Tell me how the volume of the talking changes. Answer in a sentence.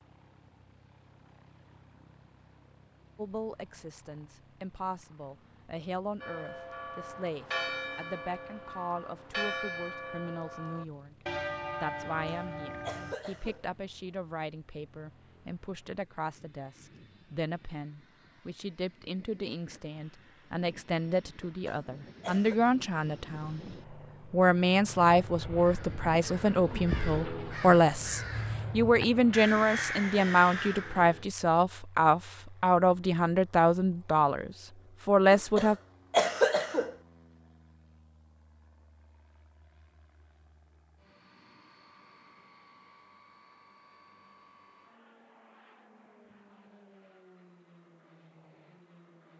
The volume of the talking goes up.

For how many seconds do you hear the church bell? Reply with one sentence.
You can hear the church bell for 7 seconds altogether.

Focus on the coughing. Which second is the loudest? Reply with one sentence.
The loudest moment of the coughing is at 36 seconds.